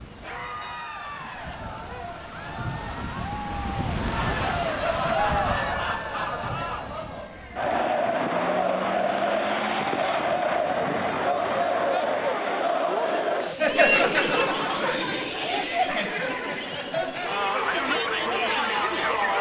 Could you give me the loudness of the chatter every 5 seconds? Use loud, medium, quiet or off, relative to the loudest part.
medium, loud, loud, loud.